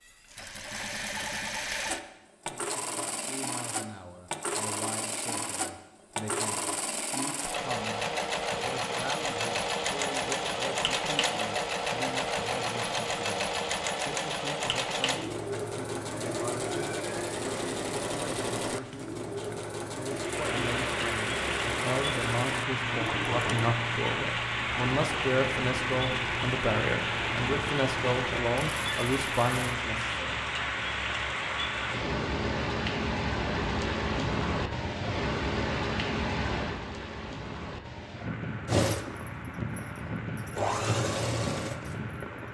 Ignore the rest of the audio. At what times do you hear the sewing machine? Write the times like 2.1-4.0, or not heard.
0.0-29.8, 38.6-42.1.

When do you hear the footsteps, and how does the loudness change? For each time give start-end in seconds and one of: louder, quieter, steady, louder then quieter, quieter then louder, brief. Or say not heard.
not heard.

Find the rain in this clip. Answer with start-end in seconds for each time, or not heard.
20.1-42.4.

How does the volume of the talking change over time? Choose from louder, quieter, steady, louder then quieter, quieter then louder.
louder.